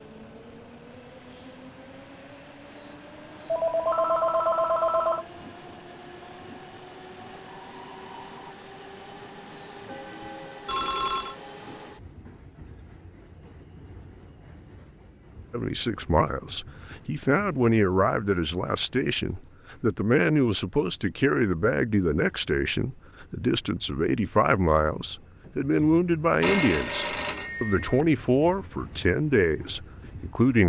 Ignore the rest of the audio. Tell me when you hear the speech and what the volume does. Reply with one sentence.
The speech can be heard from 15.5 to 30.6 s, at a steady volume.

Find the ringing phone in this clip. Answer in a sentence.
You can hear the ringing phone from 3.5 to 5.2 s, from 10.2 to 11.3 s and from 26.4 to 28.1 s.